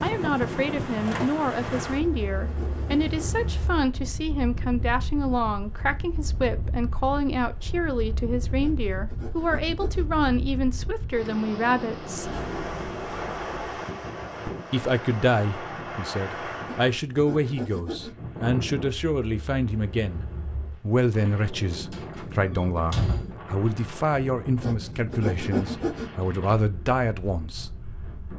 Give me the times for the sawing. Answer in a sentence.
You can hear the sawing from 1.9 to 3.5 s, from 8.6 to 10.1 s, from 16.6 to 18.1 s and from 24.6 to 26.1 s.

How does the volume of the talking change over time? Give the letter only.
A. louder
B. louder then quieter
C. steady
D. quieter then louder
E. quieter
C.